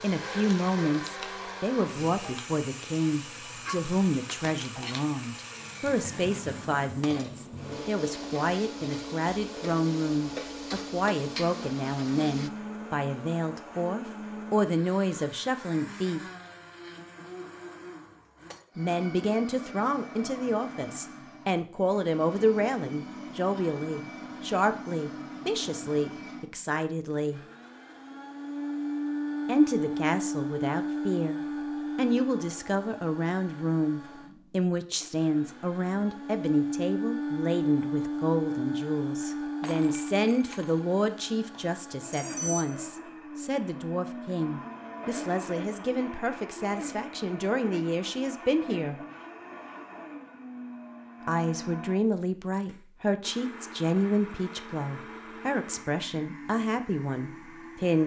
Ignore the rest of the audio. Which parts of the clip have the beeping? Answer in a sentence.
The beeping can be heard from 41.5 to 42.7 s.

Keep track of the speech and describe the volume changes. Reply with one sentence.
The loudness of the speech stays about the same.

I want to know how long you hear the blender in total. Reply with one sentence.
The blender can be heard for 58 seconds in total.